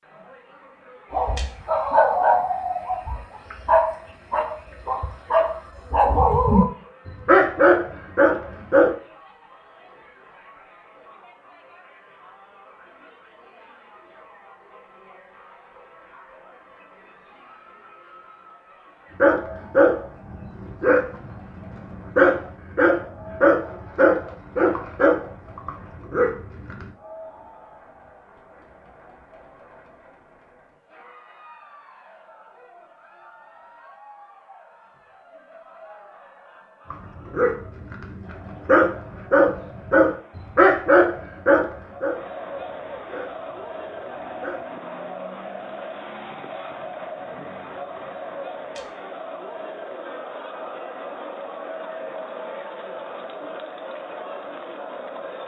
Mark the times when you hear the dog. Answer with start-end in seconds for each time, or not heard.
1.1-8.9, 19.2-26.9, 36.9-44.6.